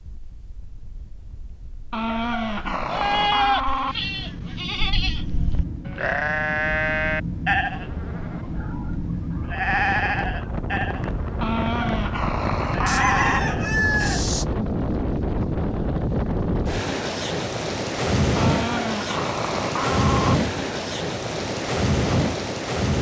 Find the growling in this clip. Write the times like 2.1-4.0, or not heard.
1.9-4.0, 11.4-13.4, 18.4-20.4.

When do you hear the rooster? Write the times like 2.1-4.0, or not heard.
12.8-14.4.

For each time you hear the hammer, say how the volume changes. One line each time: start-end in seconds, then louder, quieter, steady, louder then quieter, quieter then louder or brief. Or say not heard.
not heard.